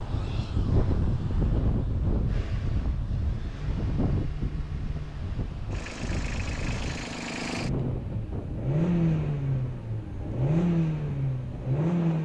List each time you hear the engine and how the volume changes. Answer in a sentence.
The engine can be heard from 2.2 to 12.2 s, getting louder.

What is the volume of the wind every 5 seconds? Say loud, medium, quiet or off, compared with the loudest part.
loud, medium, medium.